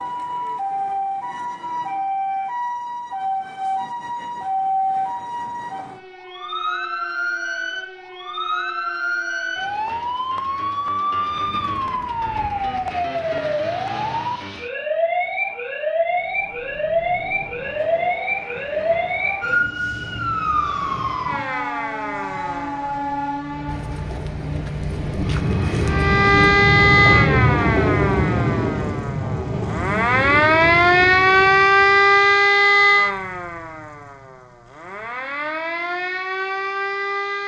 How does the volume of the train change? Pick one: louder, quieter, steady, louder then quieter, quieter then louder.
louder then quieter.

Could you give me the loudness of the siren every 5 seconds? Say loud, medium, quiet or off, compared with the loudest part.
medium, medium, medium, medium, medium, loud, loud, medium.